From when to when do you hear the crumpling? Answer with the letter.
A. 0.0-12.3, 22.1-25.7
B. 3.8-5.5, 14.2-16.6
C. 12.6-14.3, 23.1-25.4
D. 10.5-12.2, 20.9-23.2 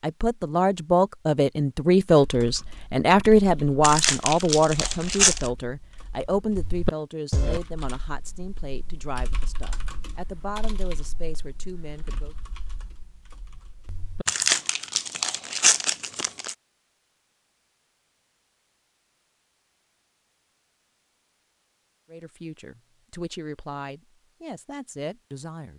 B.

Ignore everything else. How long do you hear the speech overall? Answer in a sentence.
The speech can be heard for 16 seconds in total.